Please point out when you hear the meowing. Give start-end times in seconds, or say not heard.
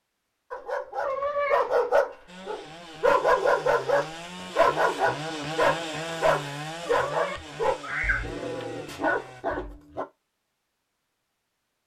1.0-1.8, 7.0-8.7.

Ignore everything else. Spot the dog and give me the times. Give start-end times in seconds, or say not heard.
0.5-10.1.